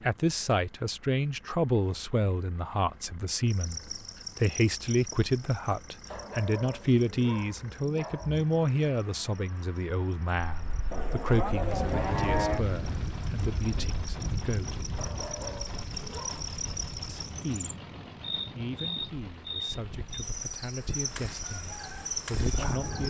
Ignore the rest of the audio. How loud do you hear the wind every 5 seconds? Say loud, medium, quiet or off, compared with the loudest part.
off, off, loud, medium, loud.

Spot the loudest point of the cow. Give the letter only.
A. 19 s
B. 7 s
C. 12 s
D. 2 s
C.